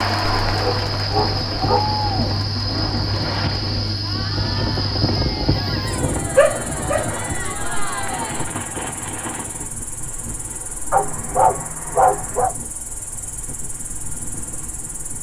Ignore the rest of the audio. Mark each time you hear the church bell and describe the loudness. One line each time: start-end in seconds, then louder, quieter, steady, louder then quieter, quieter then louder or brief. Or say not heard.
not heard.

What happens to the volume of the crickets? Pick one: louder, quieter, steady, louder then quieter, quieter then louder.
quieter.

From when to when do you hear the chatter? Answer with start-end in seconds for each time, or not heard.
0.0-8.6.